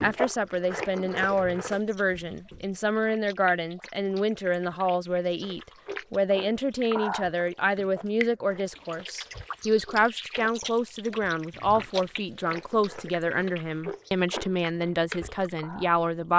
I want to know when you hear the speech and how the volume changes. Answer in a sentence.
The speech can be heard from 0.0 to 16.3 s, at a steady volume.